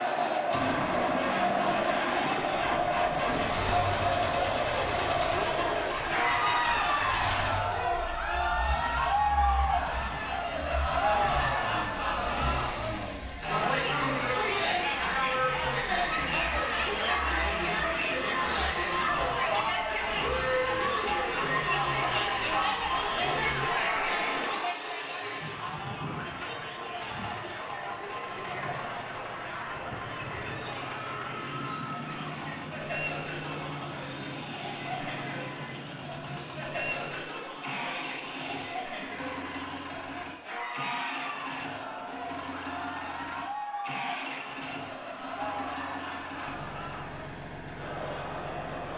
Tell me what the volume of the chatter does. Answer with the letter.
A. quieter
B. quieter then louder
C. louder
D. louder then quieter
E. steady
A.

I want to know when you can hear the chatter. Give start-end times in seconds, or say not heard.
0.0-48.9.